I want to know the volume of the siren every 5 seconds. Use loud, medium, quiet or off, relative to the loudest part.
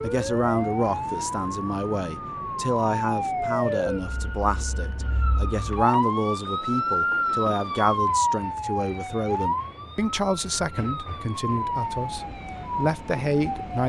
loud, loud, medium.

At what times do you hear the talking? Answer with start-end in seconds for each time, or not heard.
0.0-13.8.